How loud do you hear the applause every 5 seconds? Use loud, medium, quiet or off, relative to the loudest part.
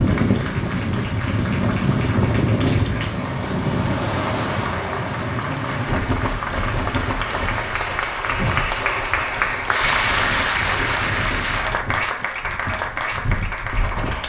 medium, loud, loud.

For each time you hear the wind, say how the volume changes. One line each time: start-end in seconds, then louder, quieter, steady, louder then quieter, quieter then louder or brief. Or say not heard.
0.0-14.2 quieter.